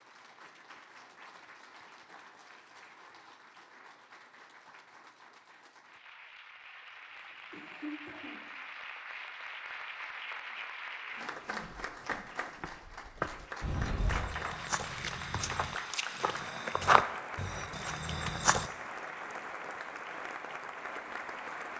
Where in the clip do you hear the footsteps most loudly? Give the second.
17 s.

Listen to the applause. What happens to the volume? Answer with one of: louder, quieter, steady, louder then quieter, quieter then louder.
louder.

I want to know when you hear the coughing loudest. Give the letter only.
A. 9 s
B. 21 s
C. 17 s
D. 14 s
D.